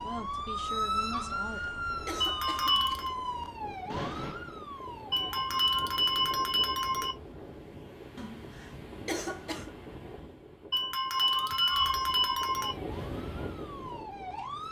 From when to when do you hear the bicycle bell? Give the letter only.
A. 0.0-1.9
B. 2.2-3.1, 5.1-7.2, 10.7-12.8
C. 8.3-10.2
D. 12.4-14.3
B.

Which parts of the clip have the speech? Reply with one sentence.
The speech can be heard from 0.0 to 1.9 s.